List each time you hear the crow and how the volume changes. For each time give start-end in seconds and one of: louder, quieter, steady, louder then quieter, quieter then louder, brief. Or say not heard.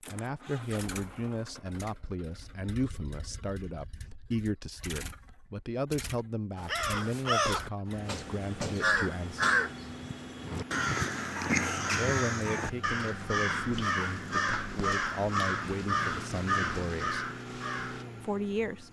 6.5-18.1 steady.